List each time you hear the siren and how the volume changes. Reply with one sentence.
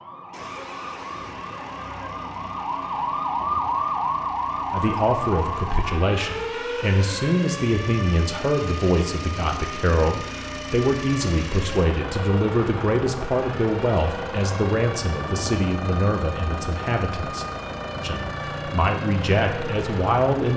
The siren can be heard from 0.0 to 20.5 s, getting quieter.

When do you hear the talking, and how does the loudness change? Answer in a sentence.
The talking can be heard from 4.7 to 20.5 s, at a steady volume.